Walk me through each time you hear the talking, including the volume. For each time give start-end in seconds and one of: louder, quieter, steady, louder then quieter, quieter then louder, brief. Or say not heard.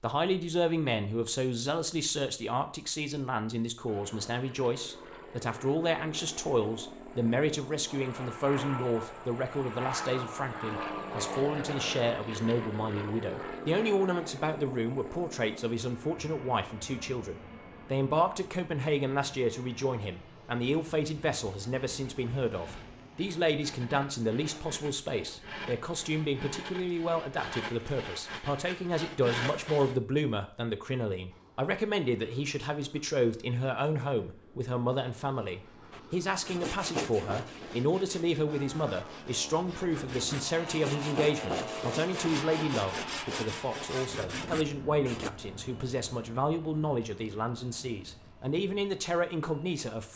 0.0-50.1 steady.